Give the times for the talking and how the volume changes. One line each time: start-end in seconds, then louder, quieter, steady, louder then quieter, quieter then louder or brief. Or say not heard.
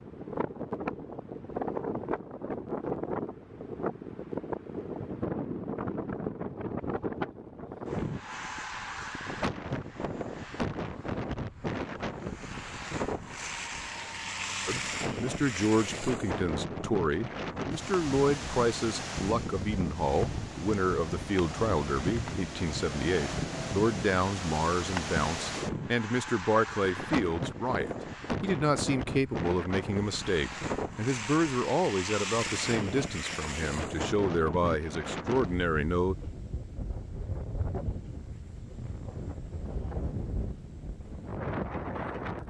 14.7-36.1 steady.